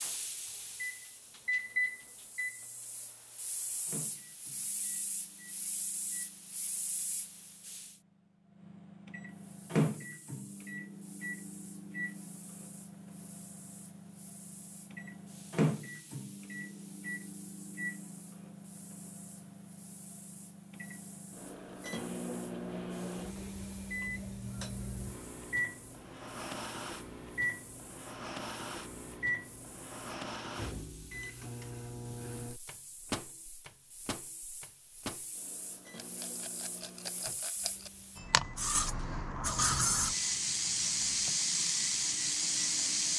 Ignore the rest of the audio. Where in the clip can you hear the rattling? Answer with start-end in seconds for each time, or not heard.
36.0-37.9.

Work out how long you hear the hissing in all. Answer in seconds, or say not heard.
42 s.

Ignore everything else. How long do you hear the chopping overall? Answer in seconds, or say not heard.
not heard.